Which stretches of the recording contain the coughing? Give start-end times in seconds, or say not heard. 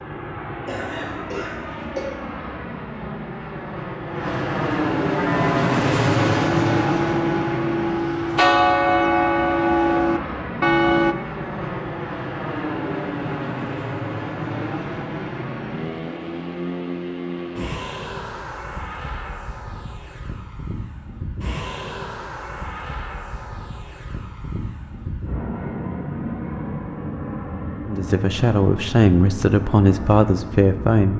0.7-2.0.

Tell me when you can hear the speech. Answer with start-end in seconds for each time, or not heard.
27.9-31.1.